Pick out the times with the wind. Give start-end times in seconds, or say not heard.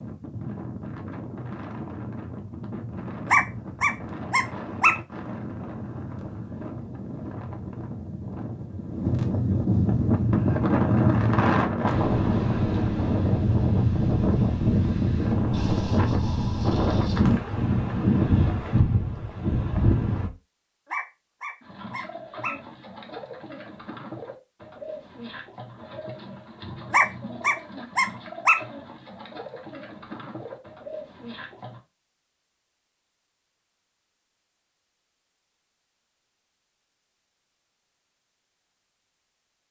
0.0-20.3.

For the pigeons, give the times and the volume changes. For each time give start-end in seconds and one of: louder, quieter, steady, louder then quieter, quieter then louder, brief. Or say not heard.
21.6-31.8 steady.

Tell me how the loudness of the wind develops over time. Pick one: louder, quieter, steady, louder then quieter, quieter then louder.
louder.